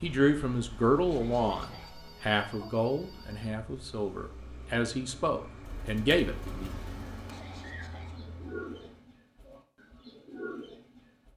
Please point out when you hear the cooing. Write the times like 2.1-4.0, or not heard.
5.6-11.3.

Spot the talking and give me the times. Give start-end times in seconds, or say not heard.
0.0-6.7.